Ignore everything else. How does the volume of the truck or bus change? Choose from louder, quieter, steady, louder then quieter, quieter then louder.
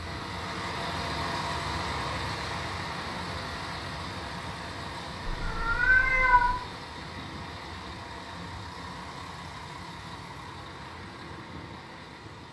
quieter.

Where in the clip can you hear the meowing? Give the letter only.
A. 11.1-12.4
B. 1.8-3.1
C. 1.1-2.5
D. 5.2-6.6
D.